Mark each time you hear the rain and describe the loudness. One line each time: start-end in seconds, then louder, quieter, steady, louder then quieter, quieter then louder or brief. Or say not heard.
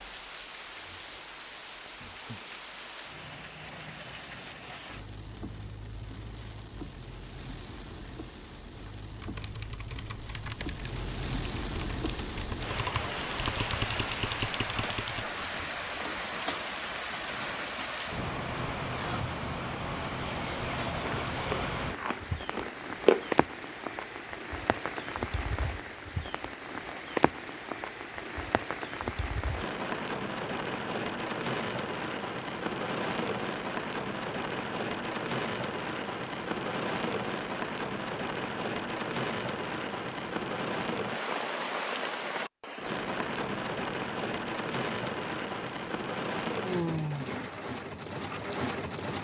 0.0-49.1 louder.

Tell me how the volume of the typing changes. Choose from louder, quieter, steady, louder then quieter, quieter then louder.
quieter then louder.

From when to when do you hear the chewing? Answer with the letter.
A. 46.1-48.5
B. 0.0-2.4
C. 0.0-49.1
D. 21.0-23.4
D.